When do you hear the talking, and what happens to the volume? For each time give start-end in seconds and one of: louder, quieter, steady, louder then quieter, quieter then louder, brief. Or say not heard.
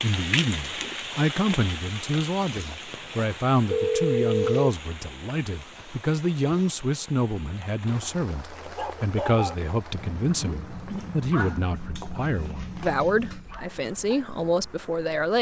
0.0-15.3 steady.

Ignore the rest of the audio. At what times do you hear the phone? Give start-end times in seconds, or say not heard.
3.7-4.7, 12.6-13.6.